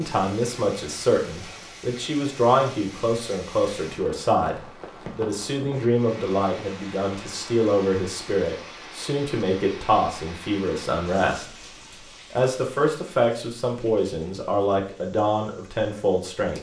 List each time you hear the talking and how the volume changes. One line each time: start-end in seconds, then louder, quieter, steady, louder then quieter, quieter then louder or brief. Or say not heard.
0.0-16.5 steady.